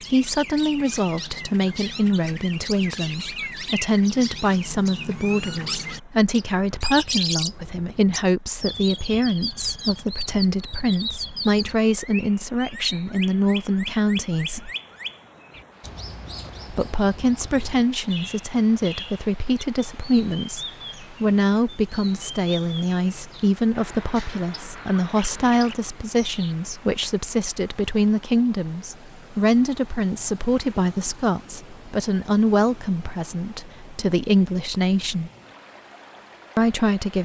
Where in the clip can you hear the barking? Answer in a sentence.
The barking can't be heard in this clip.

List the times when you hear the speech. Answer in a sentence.
The speech can be heard from 0.1 to 14.7 s, from 16.7 to 35.3 s and from 36.5 to 37.2 s.